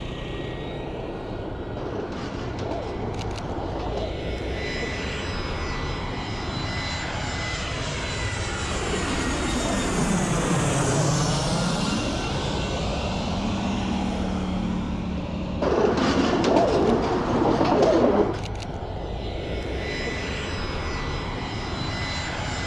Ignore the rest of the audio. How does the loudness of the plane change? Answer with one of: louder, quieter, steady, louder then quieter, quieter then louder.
louder then quieter.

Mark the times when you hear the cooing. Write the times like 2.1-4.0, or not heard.
1.8-4.2, 8.7-11.1, 15.6-18.4.